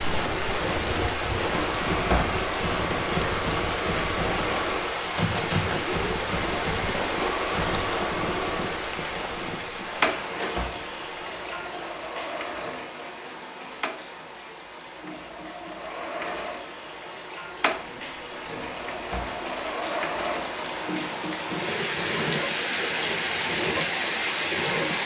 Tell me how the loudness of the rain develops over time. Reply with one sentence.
The volume of the rain goes down, then up.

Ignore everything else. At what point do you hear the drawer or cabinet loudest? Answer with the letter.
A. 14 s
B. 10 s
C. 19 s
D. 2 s
D.